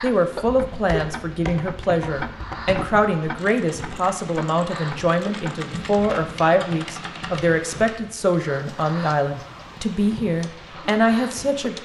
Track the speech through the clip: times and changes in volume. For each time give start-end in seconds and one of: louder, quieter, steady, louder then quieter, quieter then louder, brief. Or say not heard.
0.0-11.8 steady.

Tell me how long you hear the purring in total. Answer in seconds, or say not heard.
not heard.